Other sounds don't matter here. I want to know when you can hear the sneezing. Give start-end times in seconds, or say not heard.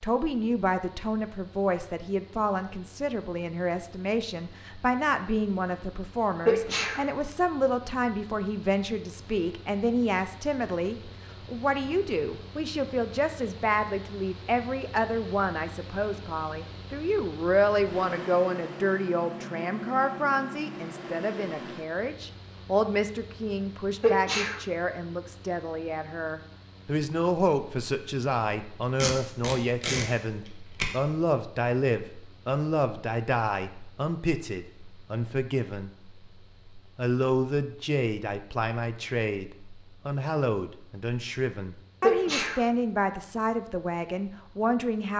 6.5-7.0, 24.0-24.6, 42.0-42.6.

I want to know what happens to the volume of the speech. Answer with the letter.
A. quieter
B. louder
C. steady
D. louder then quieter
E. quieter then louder
C.